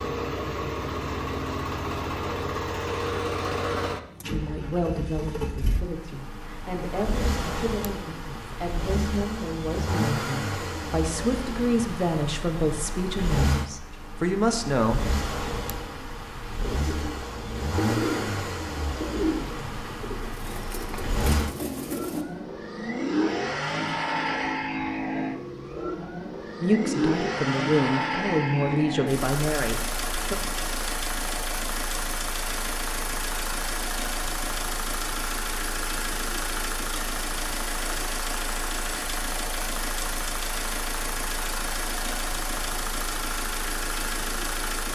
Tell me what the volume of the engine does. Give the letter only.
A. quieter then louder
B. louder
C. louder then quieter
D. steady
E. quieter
D.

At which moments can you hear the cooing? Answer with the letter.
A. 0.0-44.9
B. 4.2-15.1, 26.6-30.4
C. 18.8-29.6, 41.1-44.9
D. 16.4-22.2
D.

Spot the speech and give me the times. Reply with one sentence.
You can hear the speech from 4.2 to 15.1 s and from 26.6 to 30.4 s.